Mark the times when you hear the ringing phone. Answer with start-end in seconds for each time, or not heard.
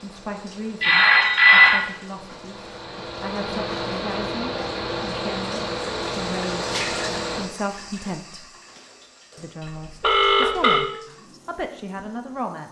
0.8-1.9, 10.0-10.8.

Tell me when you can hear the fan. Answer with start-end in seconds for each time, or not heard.
0.0-7.5.